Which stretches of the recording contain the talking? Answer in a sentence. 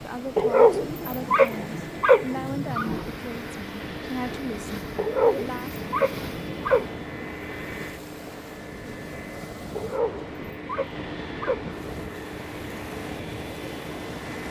The talking can be heard from 0.0 to 5.8 s.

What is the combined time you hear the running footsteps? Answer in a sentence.
You can't hear the running footsteps here.